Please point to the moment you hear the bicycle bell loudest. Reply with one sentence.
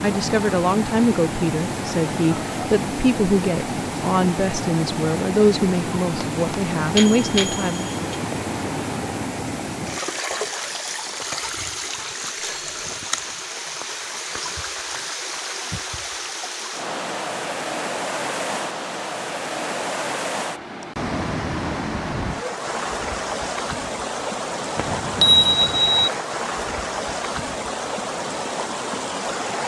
The loudest moment of the bicycle bell is at 25 seconds.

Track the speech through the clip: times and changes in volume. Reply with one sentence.
You can hear the speech from 0.0 to 8.0 s, at a steady volume.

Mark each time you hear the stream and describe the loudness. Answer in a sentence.
The stream can be heard from 0.0 to 29.6 s, at a steady volume.